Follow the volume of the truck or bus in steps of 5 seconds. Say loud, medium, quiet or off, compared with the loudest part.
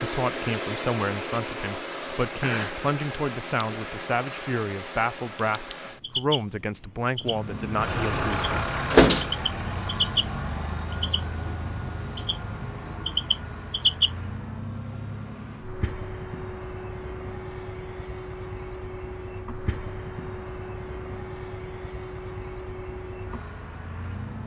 off, loud, medium, medium, medium.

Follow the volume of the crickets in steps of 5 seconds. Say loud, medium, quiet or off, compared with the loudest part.
loud, medium, loud, off, off.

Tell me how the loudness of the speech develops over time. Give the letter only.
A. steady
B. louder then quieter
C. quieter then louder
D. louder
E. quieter
A.